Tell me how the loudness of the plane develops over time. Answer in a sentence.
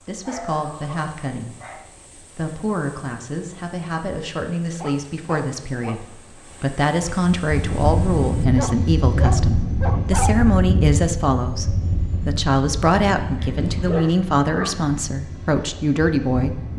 The volume of the plane goes down.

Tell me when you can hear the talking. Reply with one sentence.
You can hear the talking from 0.1 to 11.7 s and from 12.2 to 16.7 s.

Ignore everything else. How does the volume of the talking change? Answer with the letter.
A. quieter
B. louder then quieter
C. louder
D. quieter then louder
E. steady
C.